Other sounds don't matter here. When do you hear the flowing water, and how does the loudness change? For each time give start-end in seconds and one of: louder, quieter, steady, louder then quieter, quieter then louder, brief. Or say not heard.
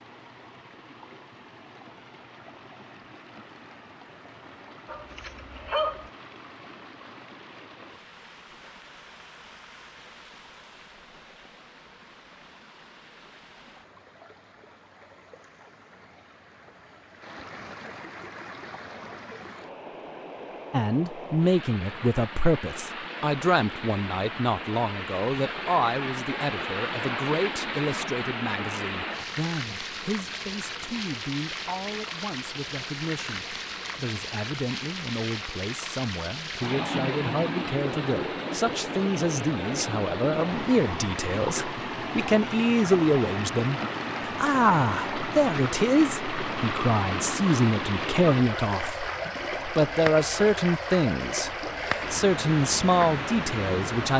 0.0-54.1 louder.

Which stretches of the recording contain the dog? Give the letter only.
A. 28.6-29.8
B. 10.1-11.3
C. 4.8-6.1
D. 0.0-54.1
C.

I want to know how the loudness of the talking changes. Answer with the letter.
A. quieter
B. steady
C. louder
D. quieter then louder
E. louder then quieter
D.